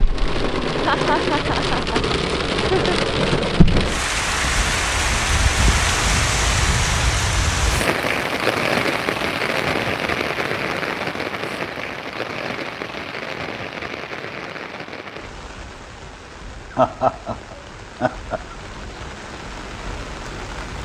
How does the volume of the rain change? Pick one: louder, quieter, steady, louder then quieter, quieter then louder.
quieter.